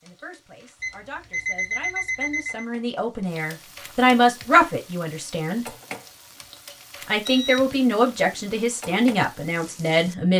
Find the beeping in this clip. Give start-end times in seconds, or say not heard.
0.8-2.6, 6.2-7.6.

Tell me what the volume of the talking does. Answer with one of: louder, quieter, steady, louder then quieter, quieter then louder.
louder.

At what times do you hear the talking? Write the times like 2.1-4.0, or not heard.
0.0-5.7, 7.0-10.3.